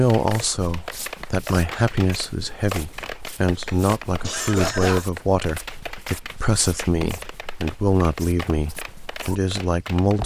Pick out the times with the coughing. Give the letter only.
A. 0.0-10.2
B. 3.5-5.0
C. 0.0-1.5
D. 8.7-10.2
B.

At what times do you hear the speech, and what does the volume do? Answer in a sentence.
The speech can be heard from 0.0 to 10.2 s, at a steady volume.